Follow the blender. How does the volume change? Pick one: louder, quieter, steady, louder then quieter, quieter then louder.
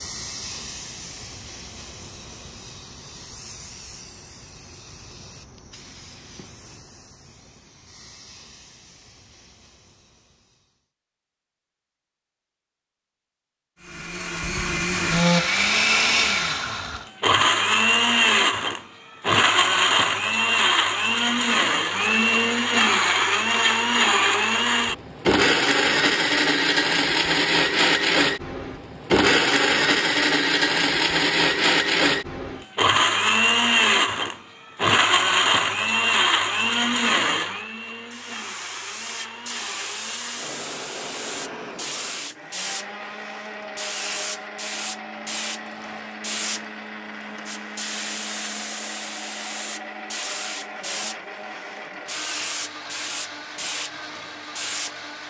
quieter.